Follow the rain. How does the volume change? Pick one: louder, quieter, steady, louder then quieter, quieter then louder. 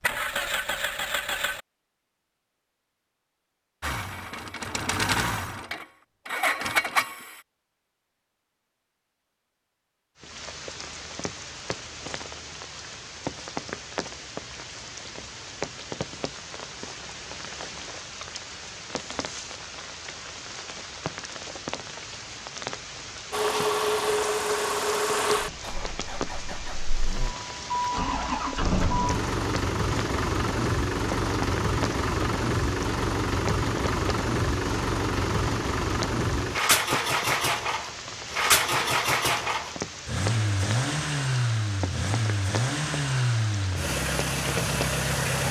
steady.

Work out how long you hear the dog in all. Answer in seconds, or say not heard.
not heard.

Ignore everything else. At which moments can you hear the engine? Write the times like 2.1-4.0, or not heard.
0.0-1.6, 3.8-7.4, 23.3-45.4.